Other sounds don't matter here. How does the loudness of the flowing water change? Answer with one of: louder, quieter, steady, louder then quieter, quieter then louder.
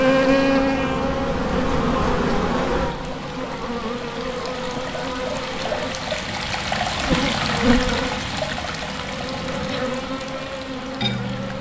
louder then quieter.